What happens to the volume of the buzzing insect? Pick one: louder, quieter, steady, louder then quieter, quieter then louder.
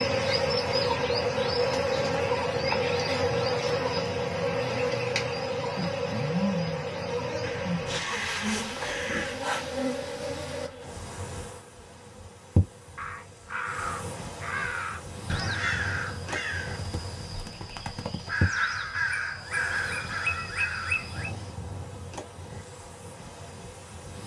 quieter.